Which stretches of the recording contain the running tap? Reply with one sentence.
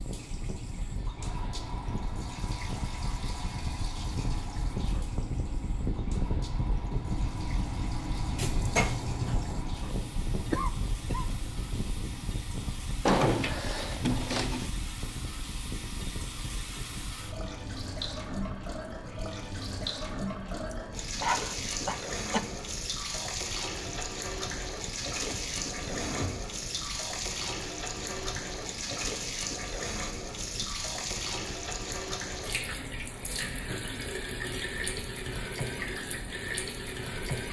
You can hear the running tap from 0.0 to 37.4 s.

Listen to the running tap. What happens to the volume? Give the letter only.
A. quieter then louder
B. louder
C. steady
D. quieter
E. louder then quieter
B.